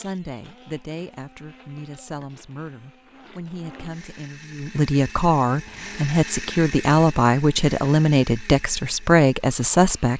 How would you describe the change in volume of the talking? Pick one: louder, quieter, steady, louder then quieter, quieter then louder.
louder.